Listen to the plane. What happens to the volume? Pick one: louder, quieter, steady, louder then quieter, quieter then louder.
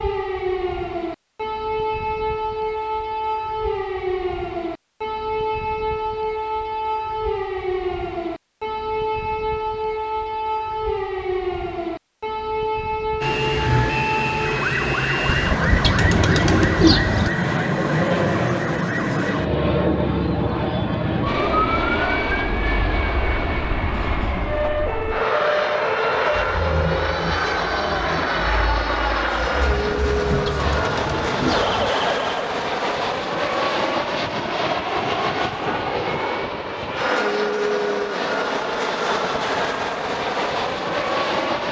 steady.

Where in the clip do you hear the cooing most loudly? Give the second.
17 s.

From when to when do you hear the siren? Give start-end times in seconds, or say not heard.
0.0-32.4.